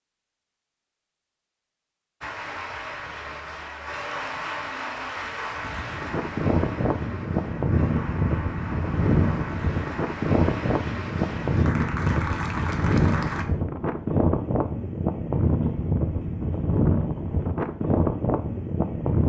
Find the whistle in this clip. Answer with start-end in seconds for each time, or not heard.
not heard.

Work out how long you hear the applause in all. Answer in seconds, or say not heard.
11 s.